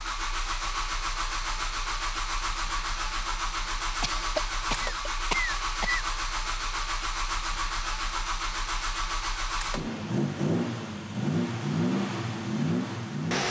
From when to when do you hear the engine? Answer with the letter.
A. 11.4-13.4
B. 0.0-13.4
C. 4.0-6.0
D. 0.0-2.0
B.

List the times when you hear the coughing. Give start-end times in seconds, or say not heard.
4.0-6.0.